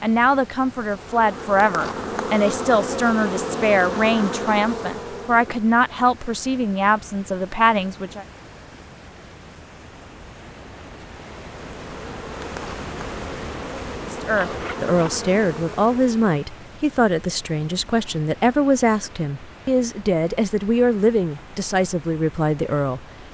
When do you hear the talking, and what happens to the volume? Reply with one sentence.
The talking can be heard from 0.0 to 8.2 s, at a steady volume; and from 14.1 to 23.1 s, at a steady volume.